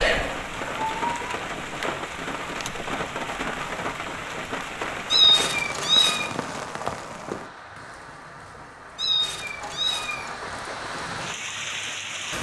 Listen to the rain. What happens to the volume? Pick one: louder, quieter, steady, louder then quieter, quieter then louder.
quieter then louder.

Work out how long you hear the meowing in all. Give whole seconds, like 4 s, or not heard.
4 s.